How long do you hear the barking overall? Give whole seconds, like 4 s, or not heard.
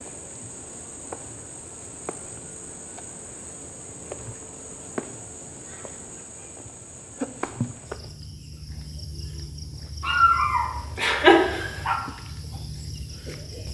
2 s.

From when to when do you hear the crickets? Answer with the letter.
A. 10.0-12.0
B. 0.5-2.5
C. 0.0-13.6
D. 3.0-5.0
C.